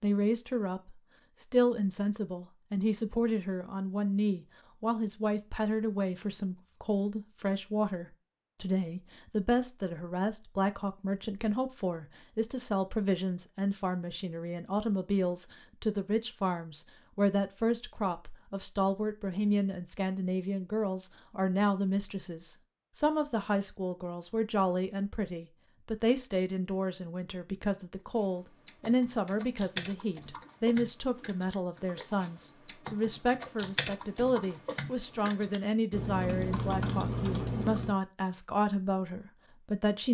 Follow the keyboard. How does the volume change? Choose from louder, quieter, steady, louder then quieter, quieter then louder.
louder.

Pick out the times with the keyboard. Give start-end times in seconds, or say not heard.
27.9-38.0.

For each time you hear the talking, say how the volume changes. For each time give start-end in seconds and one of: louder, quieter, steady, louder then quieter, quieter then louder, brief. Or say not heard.
0.0-40.0 steady.